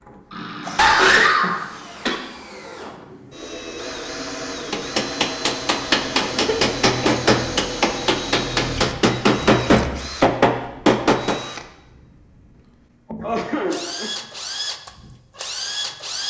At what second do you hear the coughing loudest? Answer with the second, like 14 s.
1 s.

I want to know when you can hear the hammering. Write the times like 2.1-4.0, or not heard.
4.7-11.4.